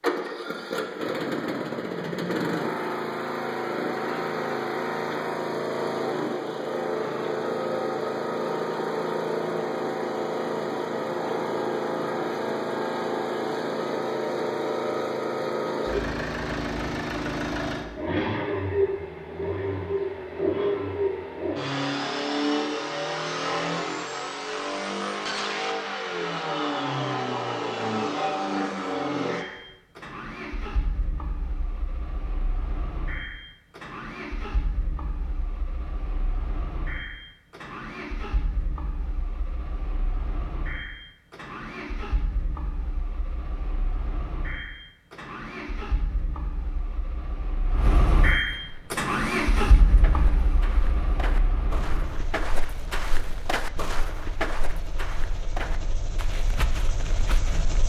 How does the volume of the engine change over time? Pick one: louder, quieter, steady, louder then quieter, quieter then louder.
quieter then louder.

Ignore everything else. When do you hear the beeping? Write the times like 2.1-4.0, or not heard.
not heard.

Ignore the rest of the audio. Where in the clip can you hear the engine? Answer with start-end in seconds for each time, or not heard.
0.0-57.8.